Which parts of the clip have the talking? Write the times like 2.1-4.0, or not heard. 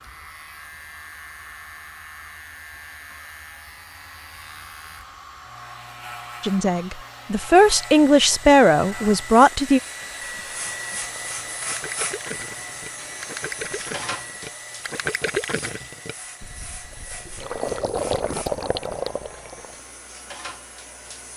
6.4-9.8.